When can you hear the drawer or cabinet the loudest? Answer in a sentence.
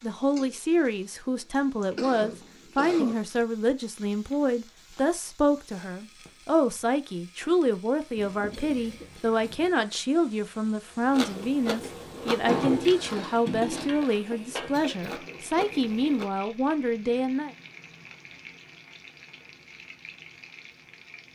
The loudest moment of the drawer or cabinet is at 13 seconds.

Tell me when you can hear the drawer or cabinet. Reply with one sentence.
The drawer or cabinet can be heard from 12.4 to 14.0 s.